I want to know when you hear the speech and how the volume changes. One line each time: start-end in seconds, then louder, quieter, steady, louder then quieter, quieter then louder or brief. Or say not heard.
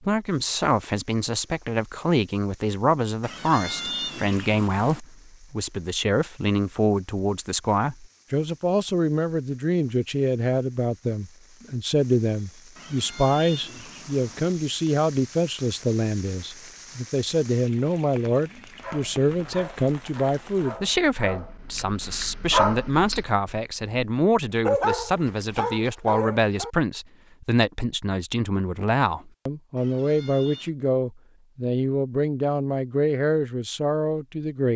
0.1-34.7 steady.